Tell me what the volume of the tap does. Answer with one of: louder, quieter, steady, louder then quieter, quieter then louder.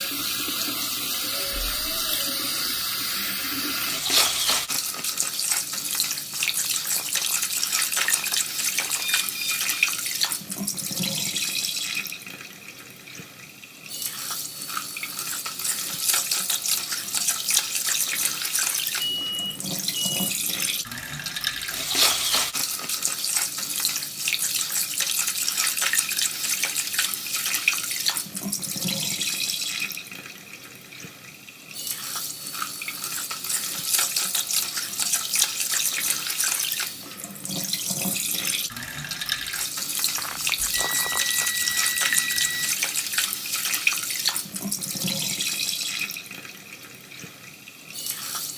steady.